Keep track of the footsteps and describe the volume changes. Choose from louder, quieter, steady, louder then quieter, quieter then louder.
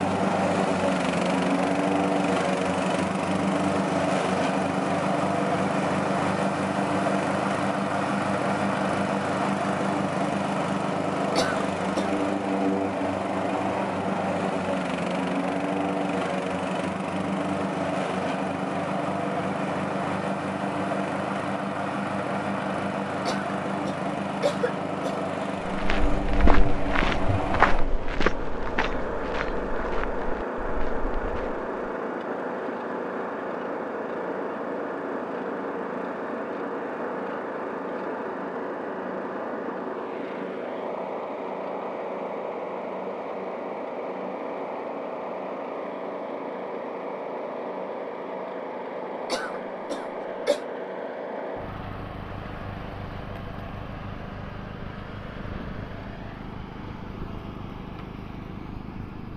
quieter.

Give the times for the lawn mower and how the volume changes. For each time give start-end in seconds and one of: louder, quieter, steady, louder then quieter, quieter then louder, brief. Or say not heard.
0.0-59.3 quieter.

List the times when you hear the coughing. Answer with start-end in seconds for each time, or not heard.
11.3-12.2, 23.2-25.2, 49.2-50.6.